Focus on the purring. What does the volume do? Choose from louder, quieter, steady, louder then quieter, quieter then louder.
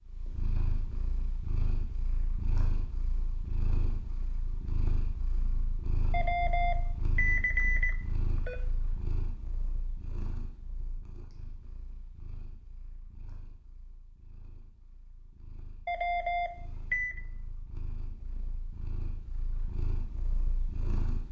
quieter then louder.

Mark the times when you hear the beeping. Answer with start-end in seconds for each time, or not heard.
6.1-8.6, 15.8-17.2.